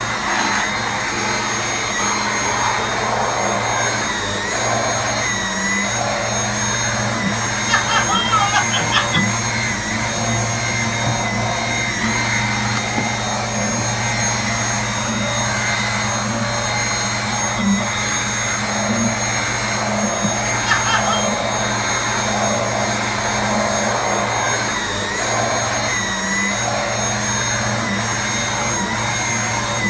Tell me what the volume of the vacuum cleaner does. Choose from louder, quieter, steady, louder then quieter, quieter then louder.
steady.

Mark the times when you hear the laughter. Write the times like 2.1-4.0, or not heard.
7.2-9.2, 20.2-21.3.